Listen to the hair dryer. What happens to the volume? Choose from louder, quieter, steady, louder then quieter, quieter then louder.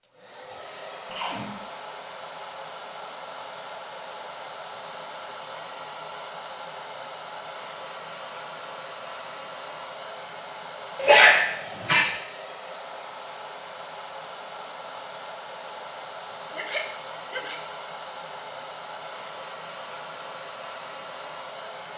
steady.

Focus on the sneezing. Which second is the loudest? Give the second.
11 s.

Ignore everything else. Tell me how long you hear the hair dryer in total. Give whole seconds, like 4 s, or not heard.
22 s.